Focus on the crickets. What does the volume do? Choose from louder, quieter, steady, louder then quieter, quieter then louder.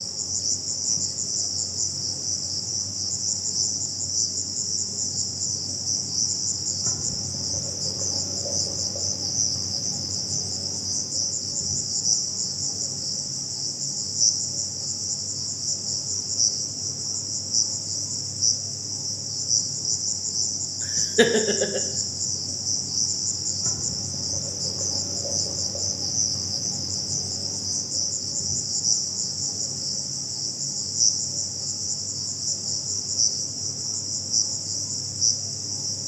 steady.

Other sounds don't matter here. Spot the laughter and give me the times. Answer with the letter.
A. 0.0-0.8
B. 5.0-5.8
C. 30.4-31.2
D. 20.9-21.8
D.